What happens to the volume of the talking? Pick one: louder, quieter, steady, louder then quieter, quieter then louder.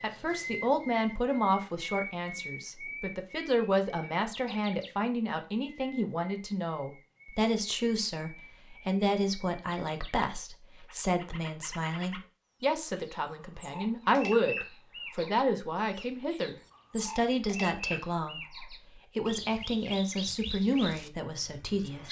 steady.